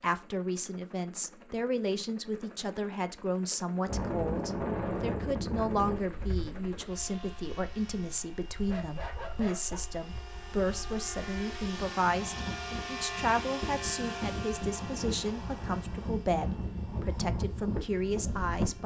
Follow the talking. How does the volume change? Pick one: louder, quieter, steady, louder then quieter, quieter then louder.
steady.